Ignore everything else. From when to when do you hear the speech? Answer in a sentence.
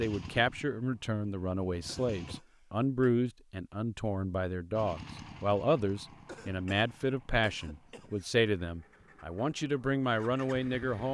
The speech can be heard from 0.0 to 11.0 s.